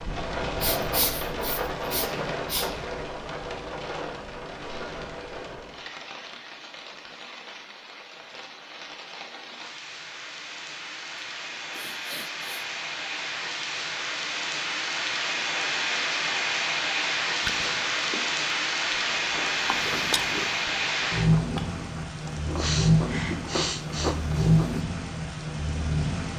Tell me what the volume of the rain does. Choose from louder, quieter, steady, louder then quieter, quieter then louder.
quieter then louder.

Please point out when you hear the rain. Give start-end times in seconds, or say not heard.
0.0-26.3.